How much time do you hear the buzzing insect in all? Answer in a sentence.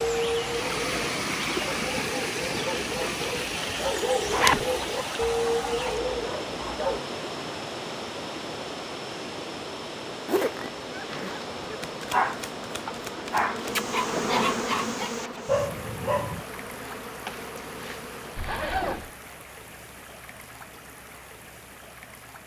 The buzzing insect can be heard for 8 seconds in total.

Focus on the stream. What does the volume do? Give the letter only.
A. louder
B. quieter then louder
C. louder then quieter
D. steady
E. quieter
E.